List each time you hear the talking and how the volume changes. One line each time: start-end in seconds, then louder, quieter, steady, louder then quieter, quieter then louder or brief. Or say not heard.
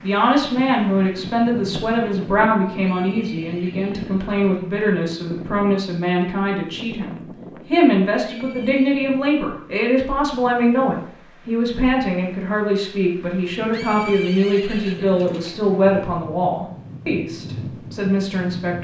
0.0-18.7 steady.